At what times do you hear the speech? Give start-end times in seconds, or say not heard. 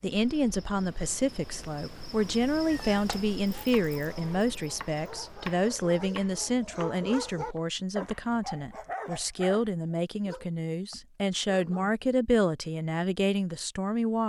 0.0-14.2.